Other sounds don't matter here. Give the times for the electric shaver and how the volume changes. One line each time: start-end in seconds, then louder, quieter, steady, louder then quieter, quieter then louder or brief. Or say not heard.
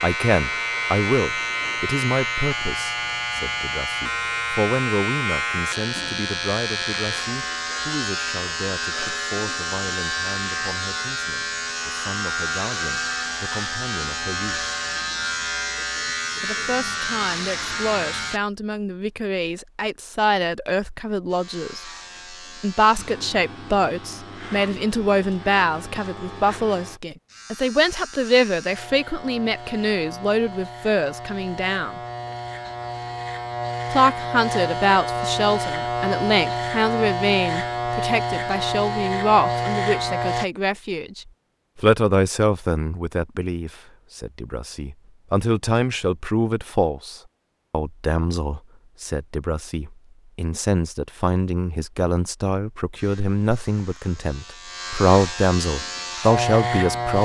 0.0-18.4 steady
21.3-40.5 louder
53.0-57.2 louder.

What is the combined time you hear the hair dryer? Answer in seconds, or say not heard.
not heard.